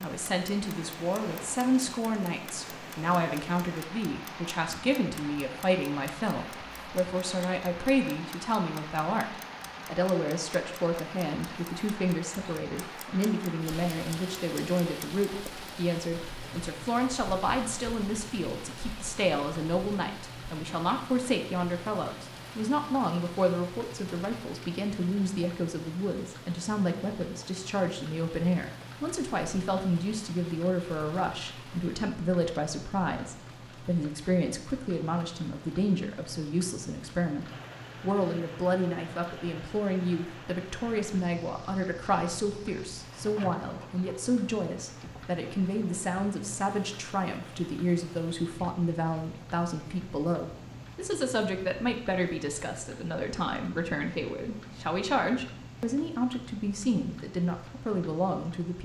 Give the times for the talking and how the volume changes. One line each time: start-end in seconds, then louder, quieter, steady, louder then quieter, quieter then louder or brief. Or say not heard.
0.0-58.7 steady.